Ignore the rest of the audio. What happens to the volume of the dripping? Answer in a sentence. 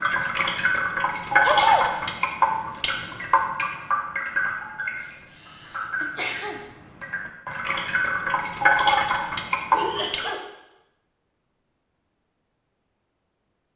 The loudness of the dripping goes down, then up.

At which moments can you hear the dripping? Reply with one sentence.
The dripping can be heard from 0.0 to 10.2 s.